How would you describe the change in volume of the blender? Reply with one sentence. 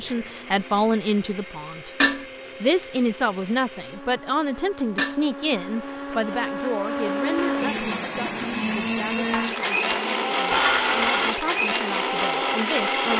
The volume of the blender goes up.